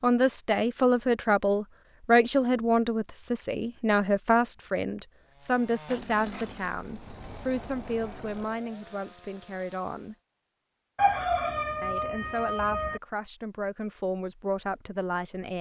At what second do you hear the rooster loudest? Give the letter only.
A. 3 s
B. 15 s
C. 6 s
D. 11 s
D.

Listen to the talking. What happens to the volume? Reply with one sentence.
The volume of the talking goes down.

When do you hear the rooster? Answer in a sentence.
You can hear the rooster from 10.9 to 13.0 s.